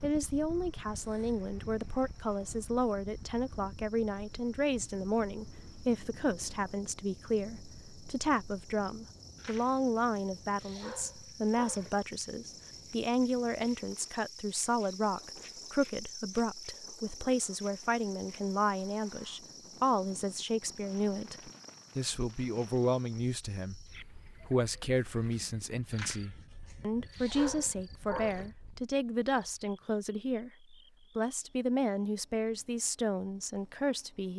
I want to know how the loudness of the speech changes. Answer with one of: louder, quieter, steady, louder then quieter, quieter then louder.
steady.